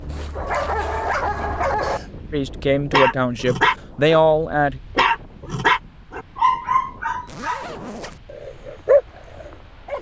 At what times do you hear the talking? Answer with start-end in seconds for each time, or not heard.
2.3-4.8.